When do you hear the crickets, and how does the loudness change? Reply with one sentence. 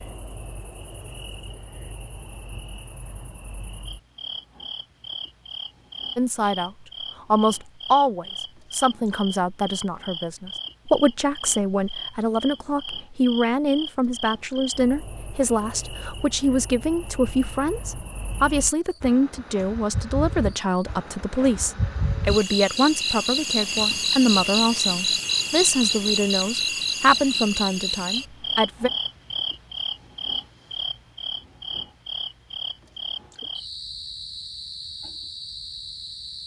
You can hear the crickets from 0.0 to 36.4 s, getting louder then quieter.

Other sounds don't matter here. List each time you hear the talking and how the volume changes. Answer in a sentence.
The talking can be heard briefly from 6.2 to 6.7 s; and from 7.3 to 28.9 s, at a steady volume.